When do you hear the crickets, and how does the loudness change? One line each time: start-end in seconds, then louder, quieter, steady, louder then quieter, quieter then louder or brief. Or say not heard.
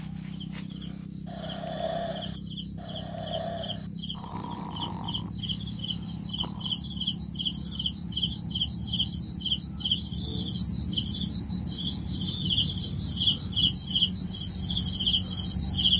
0.0-15.9 louder.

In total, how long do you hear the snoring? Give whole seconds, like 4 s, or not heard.
6 s.